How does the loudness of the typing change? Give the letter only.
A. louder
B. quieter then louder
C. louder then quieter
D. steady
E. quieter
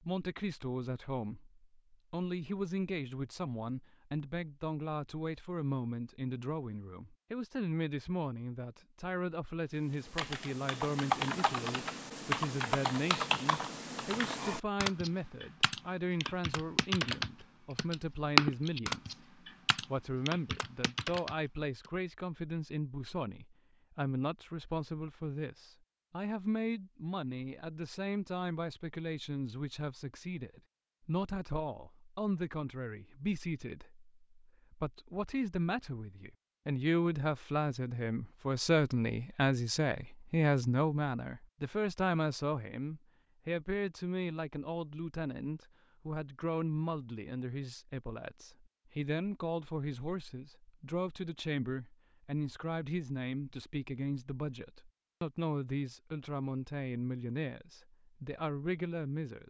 C.